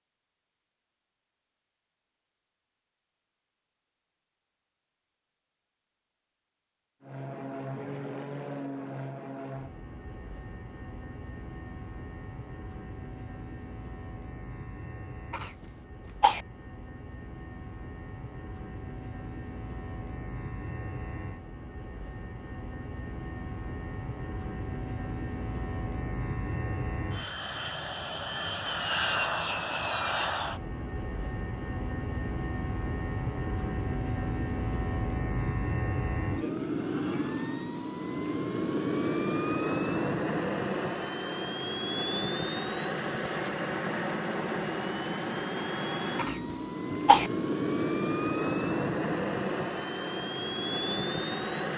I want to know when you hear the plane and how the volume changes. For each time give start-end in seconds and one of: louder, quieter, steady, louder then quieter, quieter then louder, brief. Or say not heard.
7.0-51.7 louder.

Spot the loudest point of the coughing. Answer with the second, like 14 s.
47 s.